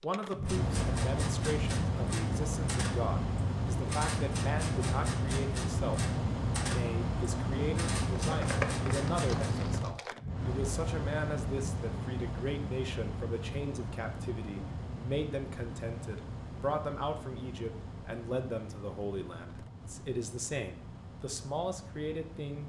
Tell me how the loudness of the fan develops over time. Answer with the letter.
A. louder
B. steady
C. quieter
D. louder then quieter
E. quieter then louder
C.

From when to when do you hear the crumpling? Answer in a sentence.
The crumpling can be heard from 8.2 to 10.2 s.